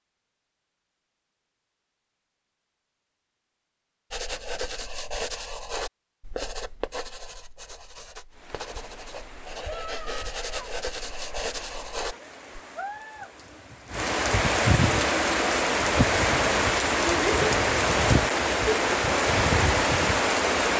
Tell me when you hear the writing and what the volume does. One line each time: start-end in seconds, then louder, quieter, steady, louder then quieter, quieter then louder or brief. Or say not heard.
4.1-12.6 quieter then louder.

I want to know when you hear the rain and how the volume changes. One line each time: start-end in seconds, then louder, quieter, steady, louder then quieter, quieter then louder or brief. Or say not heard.
8.3-20.7 louder.